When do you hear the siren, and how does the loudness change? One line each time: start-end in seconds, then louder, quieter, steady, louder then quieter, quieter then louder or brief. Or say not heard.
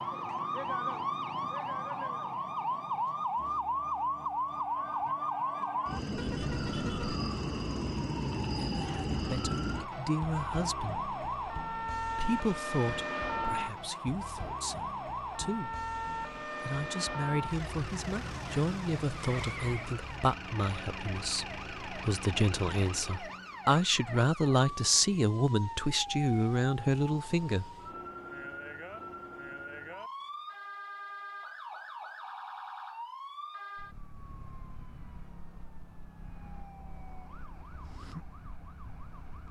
0.0-39.4 quieter.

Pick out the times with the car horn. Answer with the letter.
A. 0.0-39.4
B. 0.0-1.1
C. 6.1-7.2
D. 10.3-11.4
C.